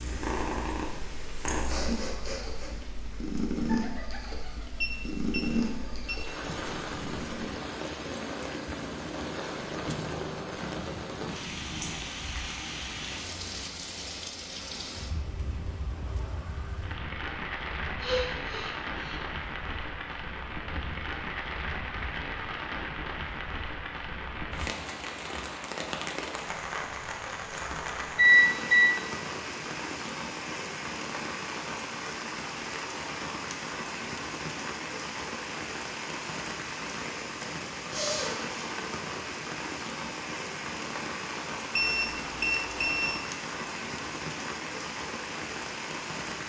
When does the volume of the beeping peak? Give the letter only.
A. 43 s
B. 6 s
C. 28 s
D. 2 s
C.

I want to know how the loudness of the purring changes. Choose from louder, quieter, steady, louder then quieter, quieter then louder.
quieter.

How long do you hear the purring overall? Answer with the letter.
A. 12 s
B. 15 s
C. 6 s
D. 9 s
A.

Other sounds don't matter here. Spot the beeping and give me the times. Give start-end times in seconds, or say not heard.
4.8-6.2, 27.6-28.9, 41.8-43.1.